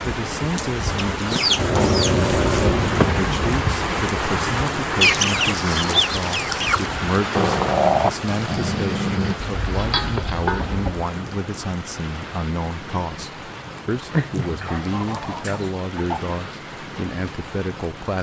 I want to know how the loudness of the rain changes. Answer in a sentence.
The loudness of the rain goes down.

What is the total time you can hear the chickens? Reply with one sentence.
You can hear the chickens for 7 seconds altogether.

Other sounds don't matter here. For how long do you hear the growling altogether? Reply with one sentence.
You can hear the growling for 5 seconds altogether.